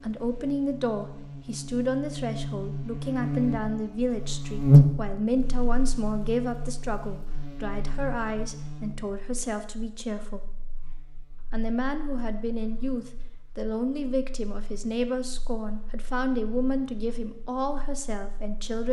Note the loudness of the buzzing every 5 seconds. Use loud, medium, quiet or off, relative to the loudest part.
loud, quiet, quiet, quiet.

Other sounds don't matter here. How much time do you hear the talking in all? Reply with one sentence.
The talking can be heard for 18 seconds in total.